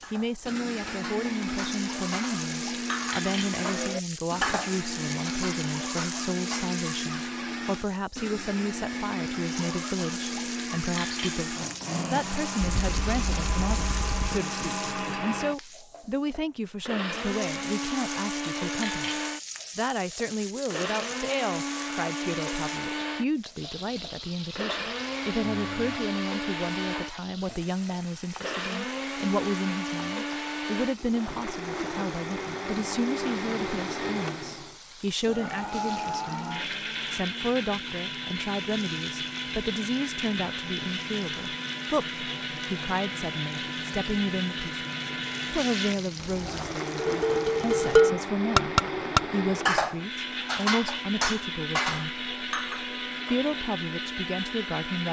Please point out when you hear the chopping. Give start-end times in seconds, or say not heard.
not heard.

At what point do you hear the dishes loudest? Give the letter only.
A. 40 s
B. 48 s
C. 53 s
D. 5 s
B.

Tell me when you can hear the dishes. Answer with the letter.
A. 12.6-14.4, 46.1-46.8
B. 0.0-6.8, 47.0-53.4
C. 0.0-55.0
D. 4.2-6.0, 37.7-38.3
B.